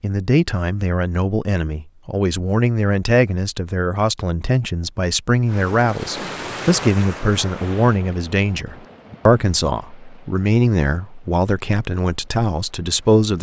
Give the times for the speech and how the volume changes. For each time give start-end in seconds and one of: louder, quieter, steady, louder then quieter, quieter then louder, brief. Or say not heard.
0.0-13.3 steady.